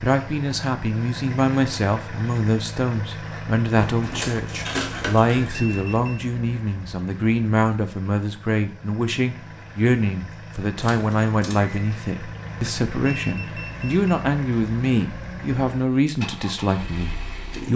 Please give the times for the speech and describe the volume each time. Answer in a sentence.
You can hear the speech from 0.0 to 17.7 s, at a steady volume.